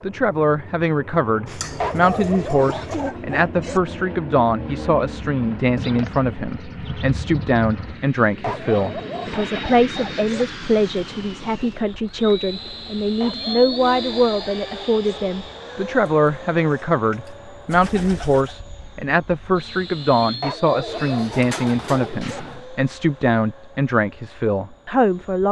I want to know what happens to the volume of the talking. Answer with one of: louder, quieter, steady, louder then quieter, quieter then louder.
steady.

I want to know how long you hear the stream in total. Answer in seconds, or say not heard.
not heard.